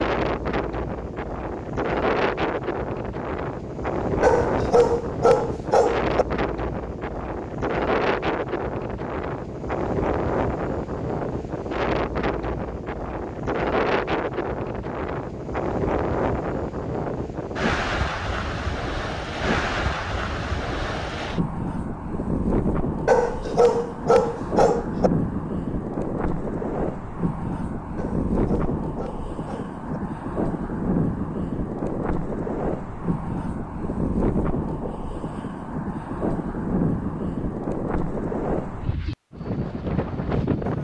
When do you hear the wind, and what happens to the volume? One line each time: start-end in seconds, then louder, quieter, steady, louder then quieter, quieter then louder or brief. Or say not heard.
0.0-40.7 steady.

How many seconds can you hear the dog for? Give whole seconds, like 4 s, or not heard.
6 s.